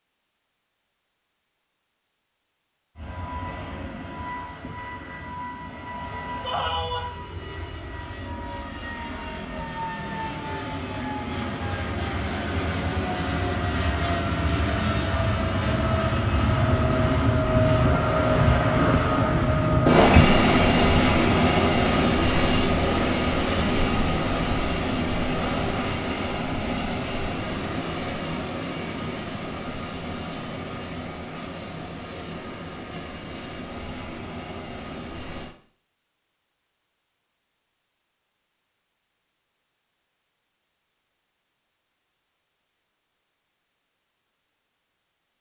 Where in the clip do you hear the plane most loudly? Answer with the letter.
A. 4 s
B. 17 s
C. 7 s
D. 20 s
D.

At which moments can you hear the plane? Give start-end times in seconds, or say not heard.
3.0-35.5.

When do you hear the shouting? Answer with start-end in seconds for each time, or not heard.
6.4-7.1.